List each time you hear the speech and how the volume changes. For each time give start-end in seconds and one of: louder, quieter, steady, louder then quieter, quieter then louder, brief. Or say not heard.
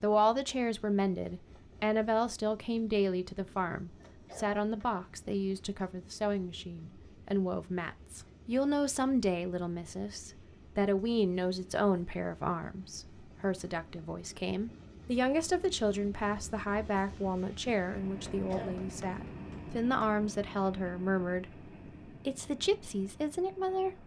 0.0-21.5 steady
22.2-24.0 brief.